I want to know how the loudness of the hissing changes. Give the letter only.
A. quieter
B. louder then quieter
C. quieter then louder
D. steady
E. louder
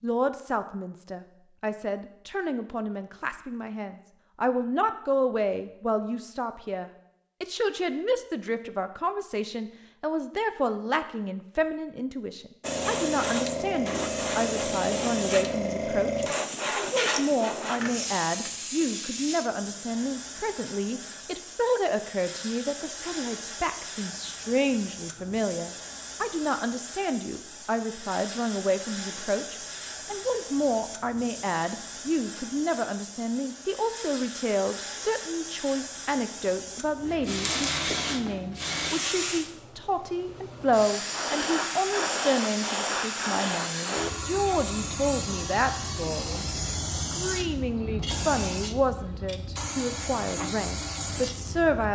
C.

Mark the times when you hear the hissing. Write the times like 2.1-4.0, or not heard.
12.6-51.8.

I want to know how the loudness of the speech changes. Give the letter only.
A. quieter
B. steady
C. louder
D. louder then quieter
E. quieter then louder
B.